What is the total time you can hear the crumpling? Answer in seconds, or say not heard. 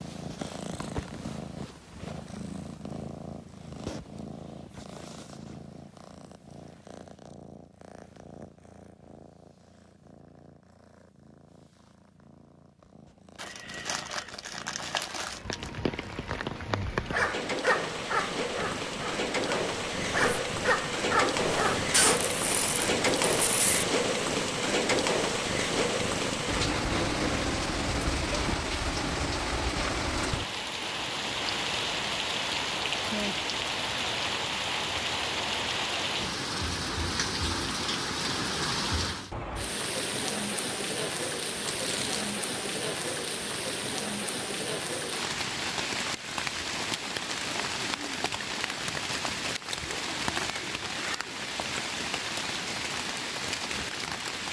5 s.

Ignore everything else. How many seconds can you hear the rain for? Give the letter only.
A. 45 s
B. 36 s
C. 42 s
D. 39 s
D.